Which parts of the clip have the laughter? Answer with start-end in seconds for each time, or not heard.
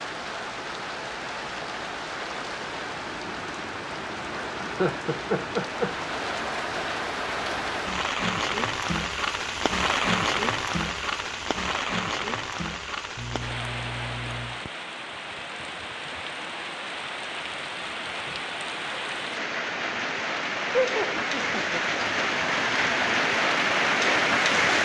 4.4-6.0, 13.2-14.6, 20.7-21.8.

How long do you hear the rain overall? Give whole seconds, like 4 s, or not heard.
25 s.